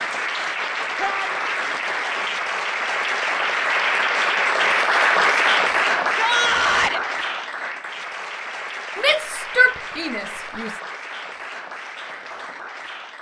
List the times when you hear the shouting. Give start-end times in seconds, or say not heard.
0.9-1.6, 6.1-7.0, 8.9-10.7.